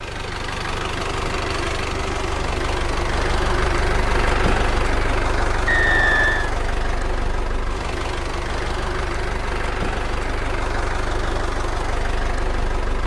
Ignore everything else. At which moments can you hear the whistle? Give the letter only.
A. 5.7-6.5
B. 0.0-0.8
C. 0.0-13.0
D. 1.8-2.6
A.